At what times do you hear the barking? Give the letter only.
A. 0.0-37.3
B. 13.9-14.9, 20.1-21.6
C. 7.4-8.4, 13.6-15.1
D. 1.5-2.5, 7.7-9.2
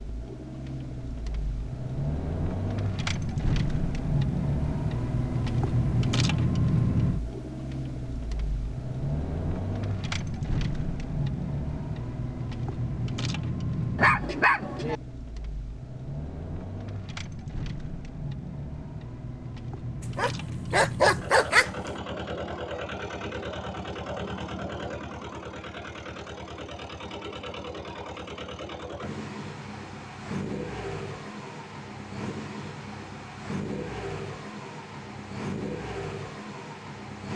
B.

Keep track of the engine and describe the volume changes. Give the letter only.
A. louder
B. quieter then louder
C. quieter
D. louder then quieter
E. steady
C.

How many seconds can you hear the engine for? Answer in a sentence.
The engine can be heard for 37 seconds in total.